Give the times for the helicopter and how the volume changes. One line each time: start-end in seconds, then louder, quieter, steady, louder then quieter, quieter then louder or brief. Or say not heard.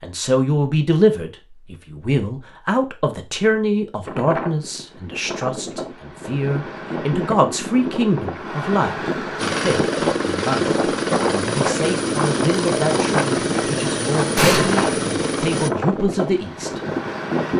9.3-15.7 steady.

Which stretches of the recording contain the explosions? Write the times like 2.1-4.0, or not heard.
14.3-14.9.